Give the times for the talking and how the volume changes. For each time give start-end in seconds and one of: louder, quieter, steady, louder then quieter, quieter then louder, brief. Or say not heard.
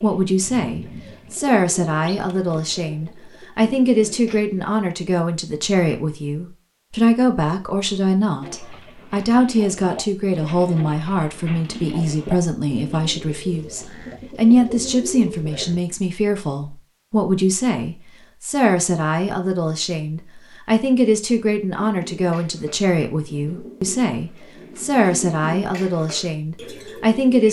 0.0-27.4 steady.